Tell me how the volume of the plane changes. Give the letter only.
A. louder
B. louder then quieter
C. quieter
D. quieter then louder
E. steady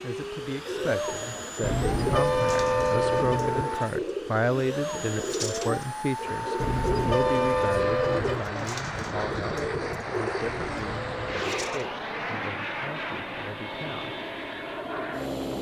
E.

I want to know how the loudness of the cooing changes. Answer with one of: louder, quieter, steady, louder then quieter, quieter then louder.
steady.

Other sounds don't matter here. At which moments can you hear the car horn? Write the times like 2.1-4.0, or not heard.
1.6-3.6, 6.6-8.4, 10.4-11.9.